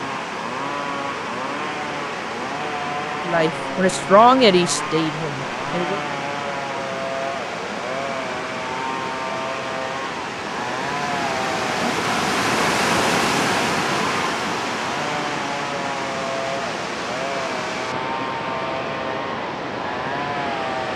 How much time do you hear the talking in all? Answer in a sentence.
You can hear the talking for 3 seconds altogether.